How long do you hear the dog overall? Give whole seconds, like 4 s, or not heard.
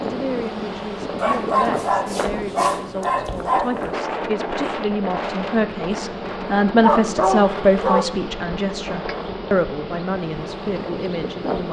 4 s.